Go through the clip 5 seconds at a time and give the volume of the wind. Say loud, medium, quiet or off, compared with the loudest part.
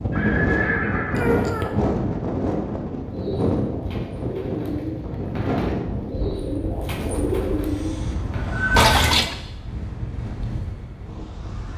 loud, medium, medium.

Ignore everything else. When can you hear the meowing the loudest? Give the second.
9 s.